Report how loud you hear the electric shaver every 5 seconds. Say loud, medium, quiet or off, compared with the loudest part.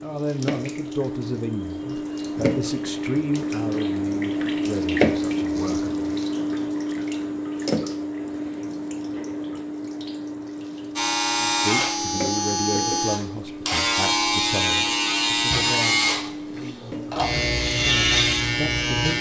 off, off, loud, loud.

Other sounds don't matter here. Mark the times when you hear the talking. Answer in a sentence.
You can hear the talking from 0.0 to 6.0 s and from 11.3 to 19.1 s.